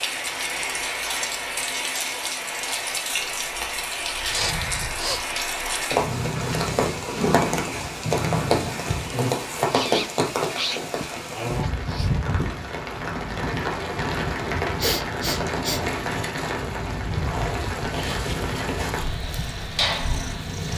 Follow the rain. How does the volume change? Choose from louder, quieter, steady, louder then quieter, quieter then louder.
steady.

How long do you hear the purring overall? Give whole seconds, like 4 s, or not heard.
6 s.